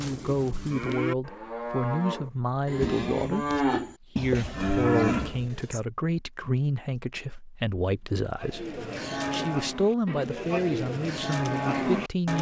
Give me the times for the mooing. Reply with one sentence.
The mooing can be heard from 0.0 to 5.8 s and from 8.4 to 12.3 s.